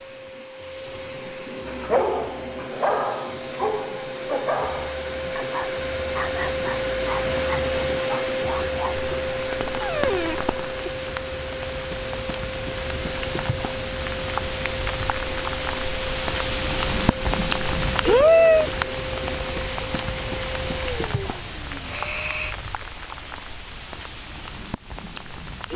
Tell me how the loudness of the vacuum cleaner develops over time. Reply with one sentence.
The loudness of the vacuum cleaner goes up, then down.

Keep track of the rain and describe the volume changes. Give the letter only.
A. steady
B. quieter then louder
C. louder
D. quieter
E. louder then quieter
E.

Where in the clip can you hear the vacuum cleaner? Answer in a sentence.
The vacuum cleaner can be heard from 0.0 to 22.6 s.